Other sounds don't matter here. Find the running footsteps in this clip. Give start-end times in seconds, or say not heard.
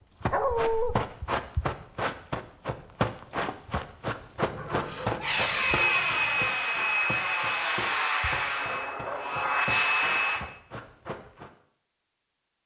0.2-11.5.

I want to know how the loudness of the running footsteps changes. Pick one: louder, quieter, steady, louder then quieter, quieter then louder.
quieter.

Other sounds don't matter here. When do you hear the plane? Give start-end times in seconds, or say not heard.
5.2-10.4.